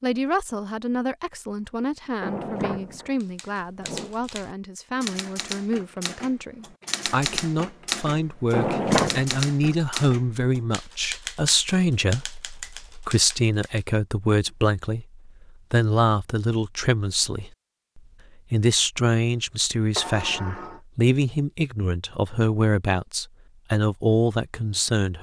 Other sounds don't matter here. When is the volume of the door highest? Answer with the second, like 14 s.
9 s.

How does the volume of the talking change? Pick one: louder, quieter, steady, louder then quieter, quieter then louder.
louder.